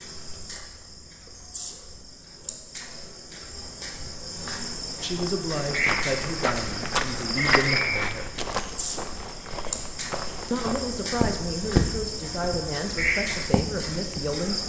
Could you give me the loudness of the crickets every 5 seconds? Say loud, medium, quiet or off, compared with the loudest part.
medium, loud, loud.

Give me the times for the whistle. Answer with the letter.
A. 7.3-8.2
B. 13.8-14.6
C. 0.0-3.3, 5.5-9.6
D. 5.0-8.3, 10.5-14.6
A.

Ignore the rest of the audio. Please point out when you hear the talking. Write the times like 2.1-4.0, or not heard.
5.0-8.3, 10.5-14.6.